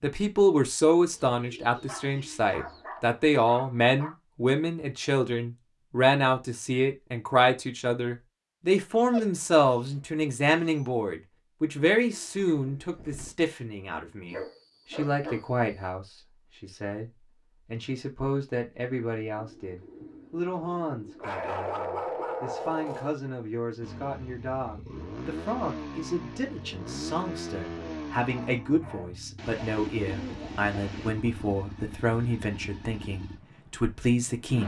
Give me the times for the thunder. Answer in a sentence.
The thunder can't be heard in this clip.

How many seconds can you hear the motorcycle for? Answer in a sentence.
The motorcycle can be heard for 11 seconds in total.